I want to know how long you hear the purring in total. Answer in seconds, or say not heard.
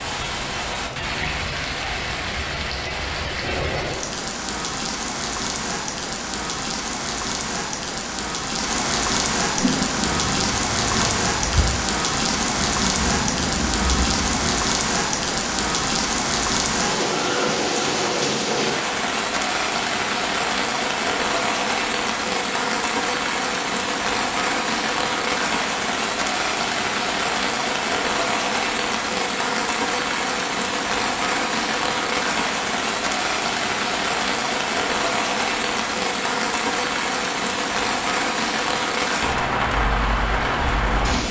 5 s.